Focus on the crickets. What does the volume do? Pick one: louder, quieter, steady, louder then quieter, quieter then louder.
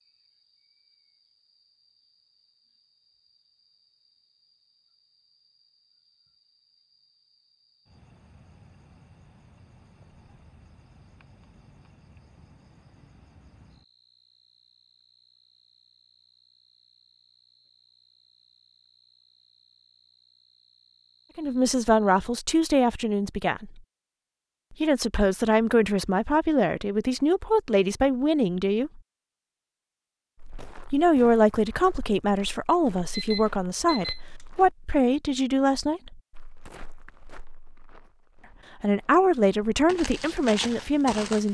louder then quieter.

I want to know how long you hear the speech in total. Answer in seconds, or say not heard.
15 s.